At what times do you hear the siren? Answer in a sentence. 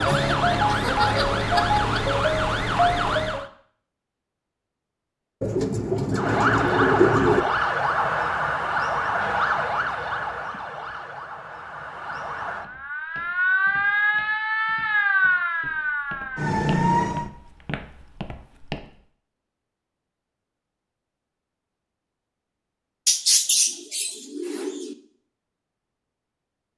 The siren can be heard from 0.0 to 3.5 s and from 6.1 to 17.3 s.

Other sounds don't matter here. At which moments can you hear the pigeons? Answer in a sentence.
You can hear the pigeons from 5.4 to 7.4 s and from 23.1 to 24.9 s.